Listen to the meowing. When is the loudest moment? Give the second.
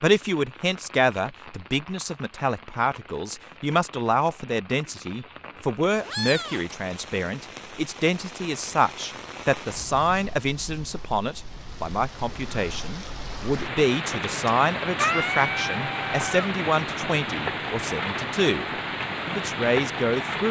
15 s.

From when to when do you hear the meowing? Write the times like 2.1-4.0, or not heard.
5.5-6.8, 14.4-16.4.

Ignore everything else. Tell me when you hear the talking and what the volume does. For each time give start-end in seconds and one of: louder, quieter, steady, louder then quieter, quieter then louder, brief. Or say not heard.
0.0-18.6 steady
19.2-20.4 brief.